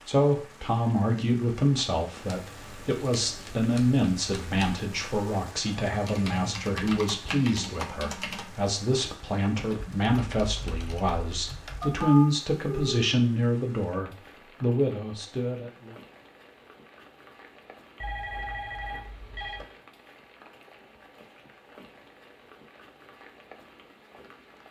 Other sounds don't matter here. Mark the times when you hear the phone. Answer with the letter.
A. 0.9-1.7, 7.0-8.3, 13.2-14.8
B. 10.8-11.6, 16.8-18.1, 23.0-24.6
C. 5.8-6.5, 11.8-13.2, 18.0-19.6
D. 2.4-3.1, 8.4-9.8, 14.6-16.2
C.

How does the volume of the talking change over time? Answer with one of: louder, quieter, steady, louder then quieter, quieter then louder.
steady.